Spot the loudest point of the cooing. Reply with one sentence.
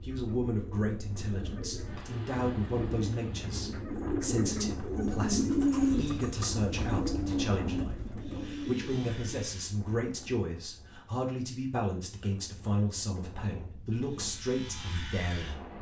The volume of the cooing peaks at 6 seconds.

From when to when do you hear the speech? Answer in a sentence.
The speech can be heard from 0.0 to 15.7 s.